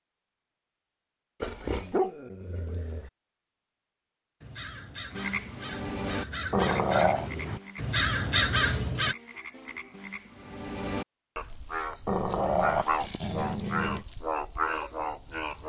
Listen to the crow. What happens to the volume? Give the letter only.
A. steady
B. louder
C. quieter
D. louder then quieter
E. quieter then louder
B.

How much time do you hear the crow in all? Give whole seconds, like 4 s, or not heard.
5 s.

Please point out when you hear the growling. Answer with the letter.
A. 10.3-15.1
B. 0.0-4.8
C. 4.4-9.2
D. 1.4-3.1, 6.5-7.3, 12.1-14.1
D.